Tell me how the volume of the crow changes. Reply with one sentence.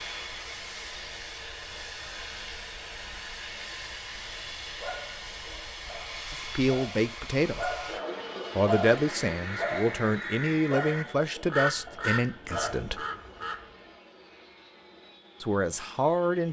The volume of the crow goes up, then down.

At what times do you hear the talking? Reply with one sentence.
The talking can be heard from 6.3 to 7.7 s, from 8.6 to 13.0 s and from 15.4 to 16.4 s.